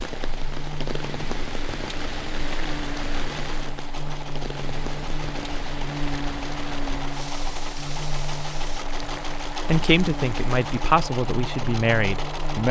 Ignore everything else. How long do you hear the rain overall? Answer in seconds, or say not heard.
11 s.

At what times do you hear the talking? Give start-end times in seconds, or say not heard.
9.7-12.6.